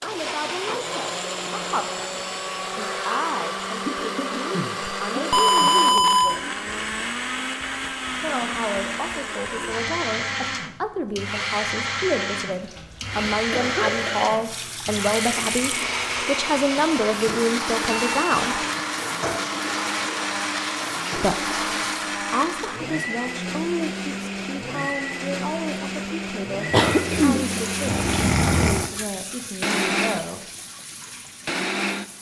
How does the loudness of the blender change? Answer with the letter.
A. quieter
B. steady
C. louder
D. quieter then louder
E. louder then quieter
B.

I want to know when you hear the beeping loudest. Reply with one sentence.
The volume of the beeping peaks at 6 seconds.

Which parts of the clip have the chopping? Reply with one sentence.
You can't hear the chopping here.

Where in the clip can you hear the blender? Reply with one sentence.
You can hear the blender from 0.0 to 32.1 s.